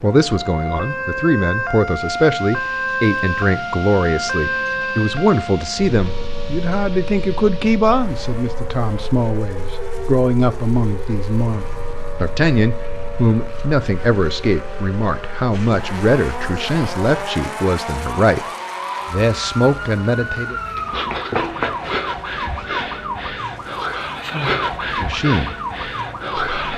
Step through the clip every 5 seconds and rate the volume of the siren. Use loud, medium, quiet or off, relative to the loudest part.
loud, medium, medium, medium, loud, loud.